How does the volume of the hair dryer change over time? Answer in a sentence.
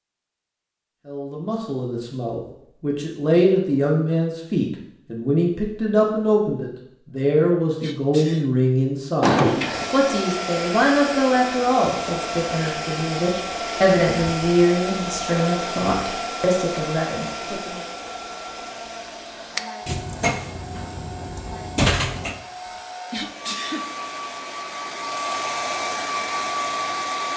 The volume of the hair dryer goes down, then up.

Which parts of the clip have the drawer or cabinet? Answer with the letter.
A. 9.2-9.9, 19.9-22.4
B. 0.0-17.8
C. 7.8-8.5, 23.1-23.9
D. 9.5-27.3
A.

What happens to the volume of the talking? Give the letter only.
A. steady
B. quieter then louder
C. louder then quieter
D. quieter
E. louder
A.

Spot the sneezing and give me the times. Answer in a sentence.
You can hear the sneezing from 7.8 to 8.5 s and from 23.1 to 23.9 s.